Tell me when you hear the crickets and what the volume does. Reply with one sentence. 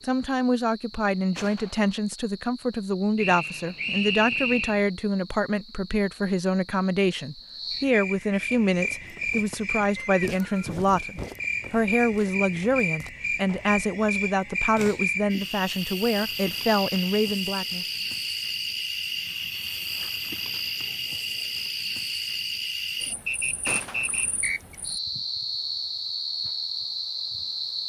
You can hear the crickets from 0.0 to 27.8 s, getting louder.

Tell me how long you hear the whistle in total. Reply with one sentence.
The whistle can be heard for 4 seconds in total.